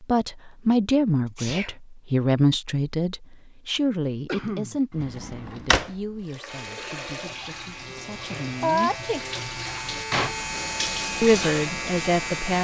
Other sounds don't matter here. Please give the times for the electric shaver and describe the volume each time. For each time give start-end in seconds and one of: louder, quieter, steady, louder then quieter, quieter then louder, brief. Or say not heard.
6.5-12.6 louder.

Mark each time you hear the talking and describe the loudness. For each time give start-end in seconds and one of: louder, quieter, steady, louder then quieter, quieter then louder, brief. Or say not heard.
0.0-9.0 quieter
11.2-12.6 brief.